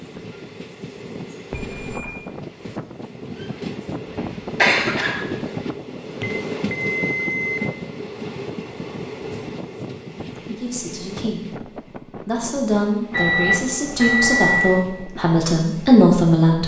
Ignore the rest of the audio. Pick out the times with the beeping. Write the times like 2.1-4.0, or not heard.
1.5-2.2, 6.2-7.6, 13.1-14.8.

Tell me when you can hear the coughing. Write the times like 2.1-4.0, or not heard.
4.5-5.2.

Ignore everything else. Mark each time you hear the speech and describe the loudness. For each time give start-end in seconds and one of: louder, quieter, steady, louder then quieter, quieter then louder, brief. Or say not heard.
10.4-16.6 louder.